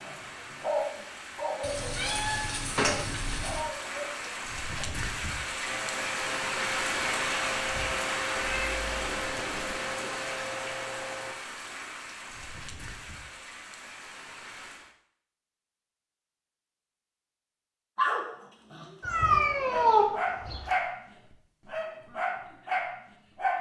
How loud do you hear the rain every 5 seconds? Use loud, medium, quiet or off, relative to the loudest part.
medium, loud, medium, off, off.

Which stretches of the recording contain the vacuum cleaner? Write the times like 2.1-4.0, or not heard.
5.6-11.3.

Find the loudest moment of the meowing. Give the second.
20 s.